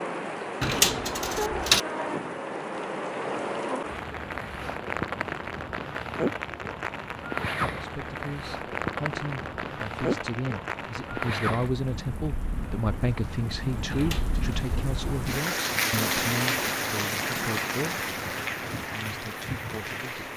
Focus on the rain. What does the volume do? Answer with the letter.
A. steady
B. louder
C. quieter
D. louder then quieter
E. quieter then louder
A.